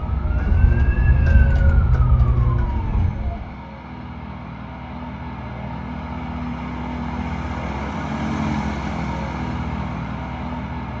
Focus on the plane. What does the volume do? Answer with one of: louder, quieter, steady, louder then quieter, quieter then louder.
louder.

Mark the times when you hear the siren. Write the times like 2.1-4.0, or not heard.
0.0-3.5.